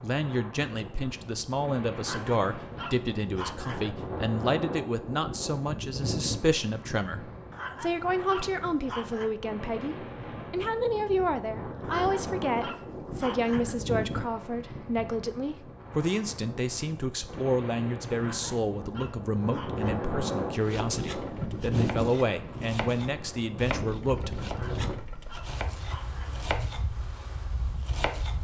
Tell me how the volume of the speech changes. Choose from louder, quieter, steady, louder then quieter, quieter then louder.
steady.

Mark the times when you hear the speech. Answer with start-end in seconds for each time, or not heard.
0.0-24.6.